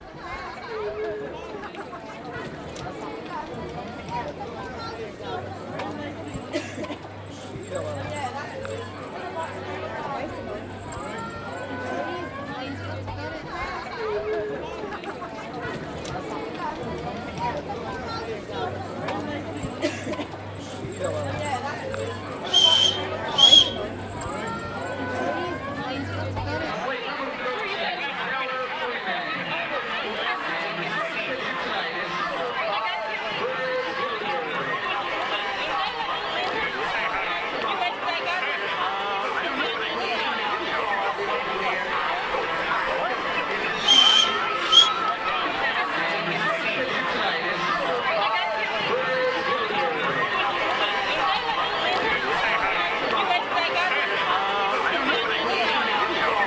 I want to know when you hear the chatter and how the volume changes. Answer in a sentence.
You can hear the chatter from 0.0 to 56.4 s, getting louder.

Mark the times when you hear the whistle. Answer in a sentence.
You can hear the whistle from 22.4 to 23.8 s and from 43.8 to 44.9 s.